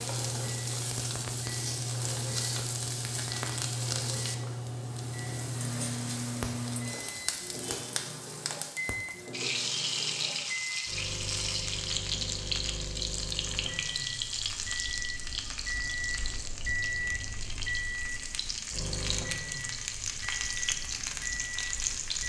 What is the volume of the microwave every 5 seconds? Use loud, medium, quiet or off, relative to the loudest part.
loud, loud, medium, loud, medium.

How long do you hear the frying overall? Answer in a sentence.
The frying can be heard for 22 seconds in total.